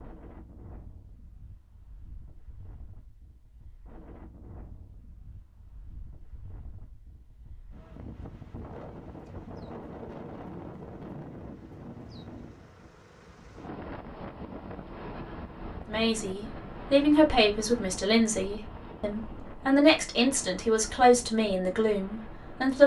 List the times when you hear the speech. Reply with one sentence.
You can hear the speech from 15.8 to 22.8 s.